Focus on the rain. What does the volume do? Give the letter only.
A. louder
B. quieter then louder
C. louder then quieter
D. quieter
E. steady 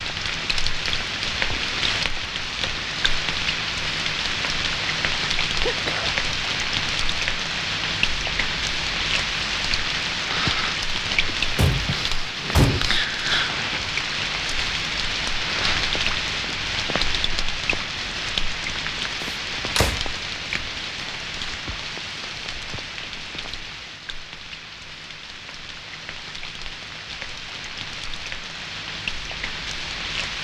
D.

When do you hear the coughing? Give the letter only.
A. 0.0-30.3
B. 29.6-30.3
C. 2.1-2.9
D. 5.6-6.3
D.